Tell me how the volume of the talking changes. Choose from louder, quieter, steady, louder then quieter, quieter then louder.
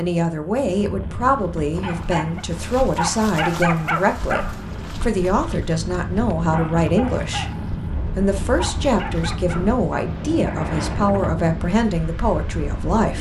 steady.